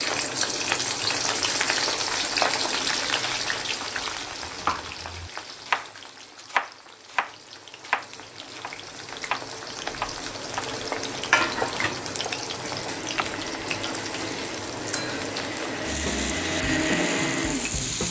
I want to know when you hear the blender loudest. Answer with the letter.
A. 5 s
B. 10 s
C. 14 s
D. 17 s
D.